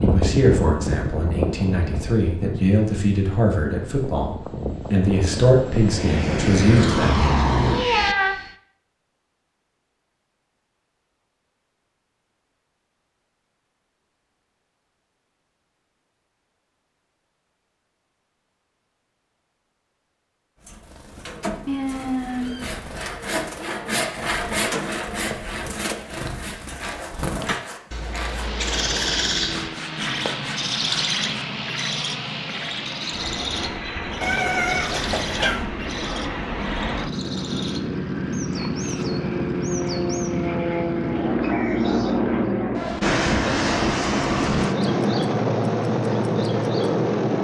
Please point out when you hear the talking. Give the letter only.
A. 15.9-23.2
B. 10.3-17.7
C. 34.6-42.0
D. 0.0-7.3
D.